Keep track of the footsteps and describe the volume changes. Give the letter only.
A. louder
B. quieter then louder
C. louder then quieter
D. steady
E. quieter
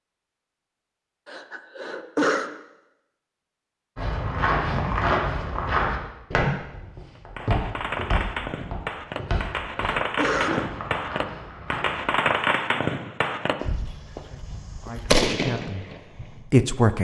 E.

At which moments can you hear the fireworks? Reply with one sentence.
The fireworks can be heard from 7.2 to 16.4 s.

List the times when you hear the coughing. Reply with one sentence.
The coughing can be heard from 1.2 to 2.5 s and from 9.3 to 10.7 s.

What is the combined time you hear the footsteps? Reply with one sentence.
The footsteps can be heard for 8 seconds in total.